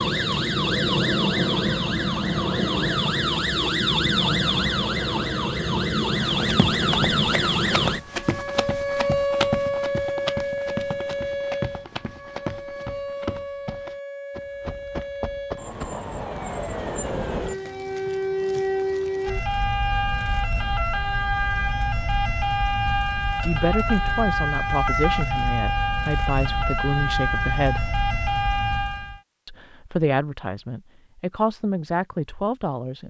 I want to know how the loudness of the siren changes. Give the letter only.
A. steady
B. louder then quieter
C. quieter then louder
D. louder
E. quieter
C.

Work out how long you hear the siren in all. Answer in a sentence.
You can hear the siren for 29 seconds altogether.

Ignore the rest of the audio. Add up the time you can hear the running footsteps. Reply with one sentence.
The running footsteps can be heard for 10 seconds in total.